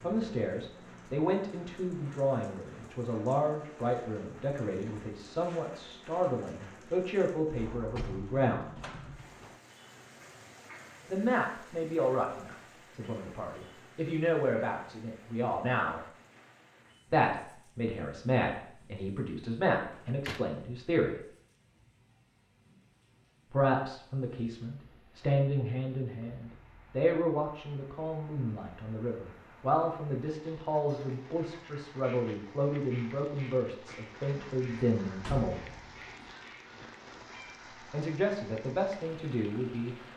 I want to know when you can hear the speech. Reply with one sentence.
The speech can be heard from 0.0 to 8.7 s, from 11.1 to 16.0 s, from 17.1 to 21.1 s, from 23.5 to 35.5 s and from 37.9 to 40.0 s.